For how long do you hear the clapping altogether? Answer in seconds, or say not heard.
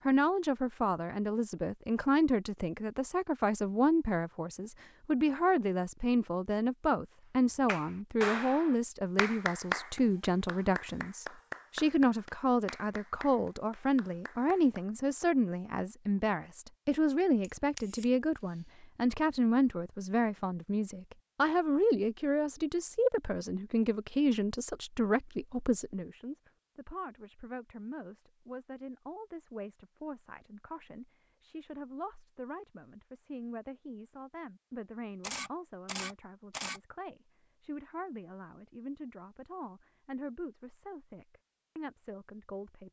7 s.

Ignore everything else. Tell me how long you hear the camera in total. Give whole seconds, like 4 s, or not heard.
2 s.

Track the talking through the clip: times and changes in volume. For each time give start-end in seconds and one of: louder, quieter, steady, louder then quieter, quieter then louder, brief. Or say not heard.
0.1-42.8 quieter.